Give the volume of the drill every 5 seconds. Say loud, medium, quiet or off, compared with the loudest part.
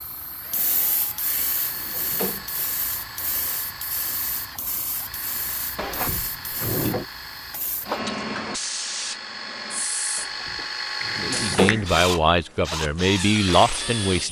medium, medium, loud.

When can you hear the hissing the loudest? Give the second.
8 s.